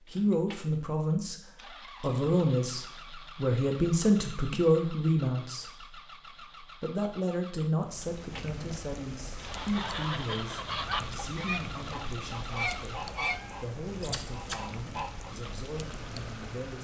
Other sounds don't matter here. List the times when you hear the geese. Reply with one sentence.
The geese can be heard from 9.3 to 15.3 s.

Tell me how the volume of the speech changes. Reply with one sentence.
The volume of the speech goes down.